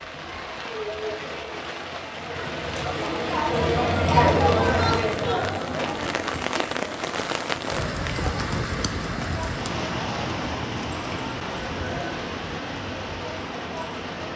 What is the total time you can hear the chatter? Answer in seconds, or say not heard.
14 s.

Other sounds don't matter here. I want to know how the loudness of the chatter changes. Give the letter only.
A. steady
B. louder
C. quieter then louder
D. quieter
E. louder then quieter
E.